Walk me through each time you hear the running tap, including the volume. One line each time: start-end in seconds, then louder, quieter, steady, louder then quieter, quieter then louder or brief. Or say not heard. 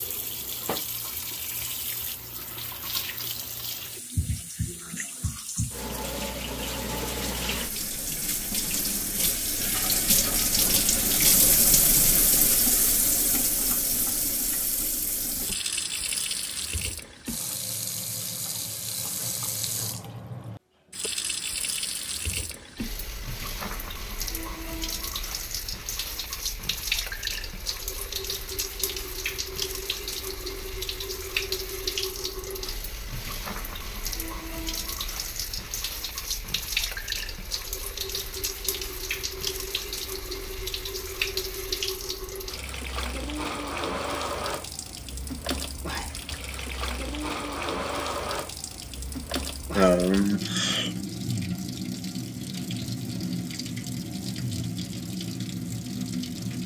0.0-56.6 steady.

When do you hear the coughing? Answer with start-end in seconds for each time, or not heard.
49.8-50.9.